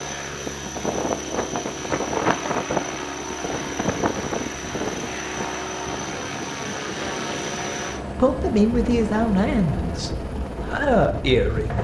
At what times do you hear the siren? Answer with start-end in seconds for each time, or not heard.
not heard.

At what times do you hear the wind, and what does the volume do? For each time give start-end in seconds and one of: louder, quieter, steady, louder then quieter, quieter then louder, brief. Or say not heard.
0.0-11.7 quieter.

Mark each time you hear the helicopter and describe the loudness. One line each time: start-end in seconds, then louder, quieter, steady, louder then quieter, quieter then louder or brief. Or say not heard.
0.0-11.7 steady.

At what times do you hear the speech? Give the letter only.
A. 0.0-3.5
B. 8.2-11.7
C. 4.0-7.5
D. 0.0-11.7
B.